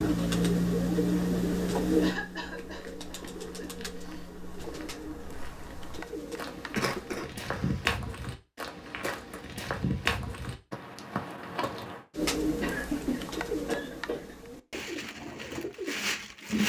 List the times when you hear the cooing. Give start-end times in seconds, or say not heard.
0.0-7.2, 12.2-16.6.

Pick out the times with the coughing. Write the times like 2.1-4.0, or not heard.
2.0-3.9, 6.8-7.8, 12.6-14.3.